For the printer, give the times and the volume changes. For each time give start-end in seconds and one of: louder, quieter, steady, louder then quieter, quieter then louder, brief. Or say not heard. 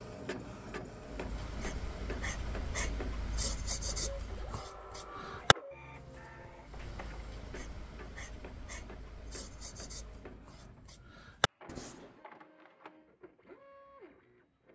0.0-14.7 quieter.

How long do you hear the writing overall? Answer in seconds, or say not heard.
11 s.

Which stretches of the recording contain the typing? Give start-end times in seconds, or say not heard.
not heard.